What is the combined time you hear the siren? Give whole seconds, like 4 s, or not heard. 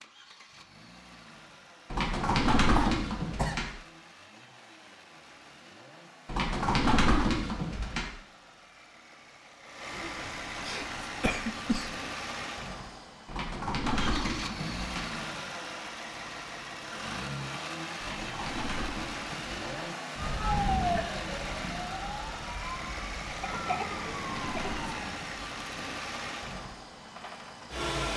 5 s.